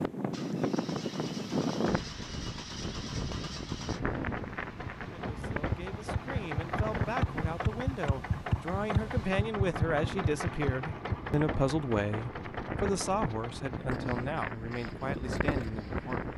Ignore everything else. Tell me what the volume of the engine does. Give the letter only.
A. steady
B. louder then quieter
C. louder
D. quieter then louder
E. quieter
B.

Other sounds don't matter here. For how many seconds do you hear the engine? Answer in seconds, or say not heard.
16 s.